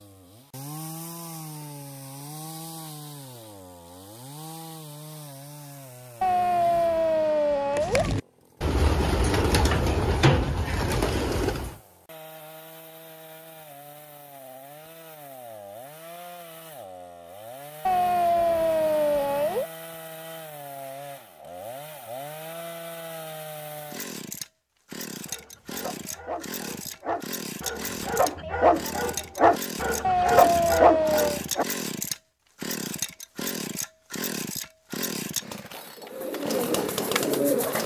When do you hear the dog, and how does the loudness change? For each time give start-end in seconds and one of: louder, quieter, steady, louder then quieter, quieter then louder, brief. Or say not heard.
25.2-31.6 louder.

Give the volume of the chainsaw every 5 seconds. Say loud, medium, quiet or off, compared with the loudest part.
medium, quiet, quiet, medium, medium, loud, loud, loud.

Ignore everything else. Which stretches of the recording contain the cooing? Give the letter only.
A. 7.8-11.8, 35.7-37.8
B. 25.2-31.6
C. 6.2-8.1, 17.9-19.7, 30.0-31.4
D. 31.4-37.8
A.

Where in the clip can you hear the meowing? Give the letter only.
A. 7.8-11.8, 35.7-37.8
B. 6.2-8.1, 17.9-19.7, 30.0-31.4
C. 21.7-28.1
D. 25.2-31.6
B.